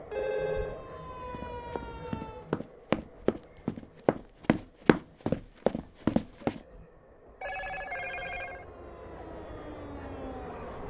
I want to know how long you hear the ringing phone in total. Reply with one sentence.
The ringing phone can be heard for 2 seconds in total.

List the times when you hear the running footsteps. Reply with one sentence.
The running footsteps can be heard from 1.3 to 6.6 s.